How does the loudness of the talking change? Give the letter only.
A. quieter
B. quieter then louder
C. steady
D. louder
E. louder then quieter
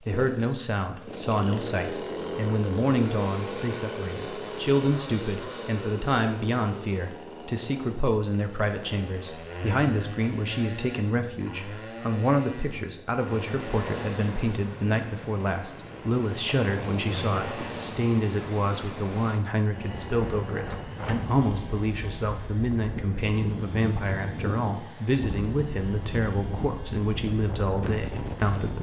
C.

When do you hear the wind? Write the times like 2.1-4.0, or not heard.
13.2-28.7.